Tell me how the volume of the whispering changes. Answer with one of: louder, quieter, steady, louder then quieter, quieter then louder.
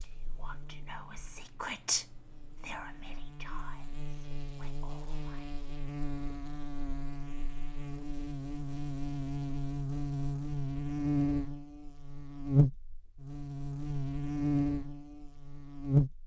louder then quieter.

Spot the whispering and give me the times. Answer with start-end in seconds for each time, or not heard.
0.0-5.6.